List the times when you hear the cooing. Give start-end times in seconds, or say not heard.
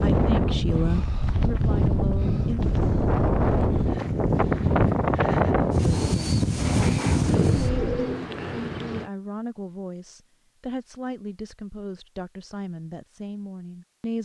7.2-9.1.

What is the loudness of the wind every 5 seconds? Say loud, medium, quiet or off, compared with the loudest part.
loud, loud, off.